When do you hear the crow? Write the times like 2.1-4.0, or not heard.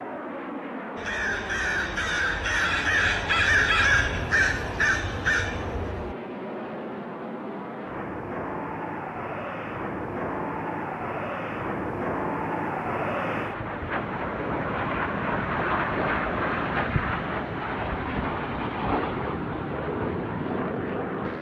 0.9-6.2.